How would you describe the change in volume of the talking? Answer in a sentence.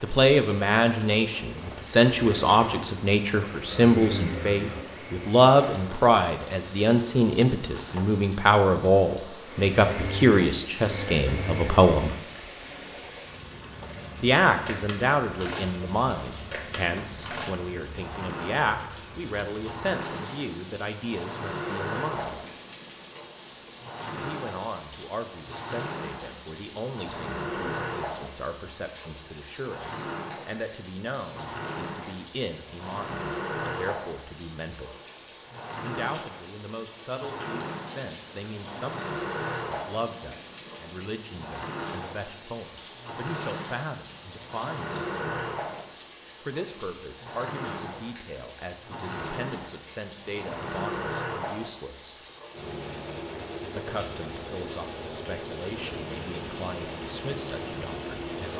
The loudness of the talking goes down.